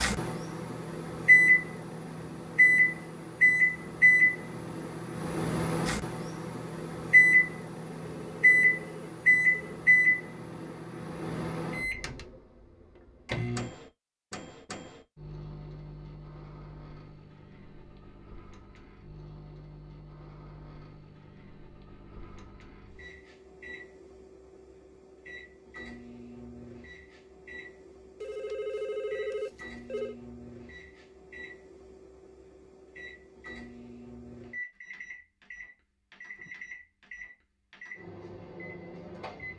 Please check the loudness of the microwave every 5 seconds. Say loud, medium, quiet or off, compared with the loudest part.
loud, loud, medium, quiet, quiet, quiet, quiet, quiet.